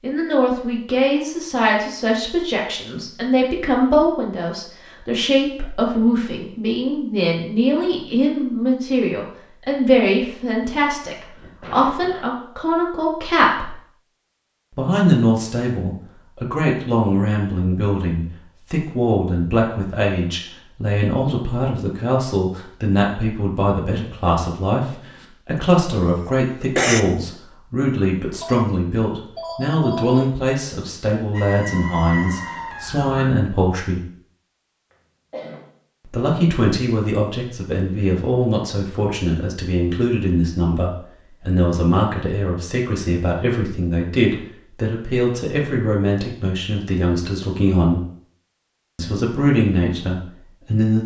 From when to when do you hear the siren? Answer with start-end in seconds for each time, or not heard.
31.3-33.3.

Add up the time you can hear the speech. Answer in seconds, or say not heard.
47 s.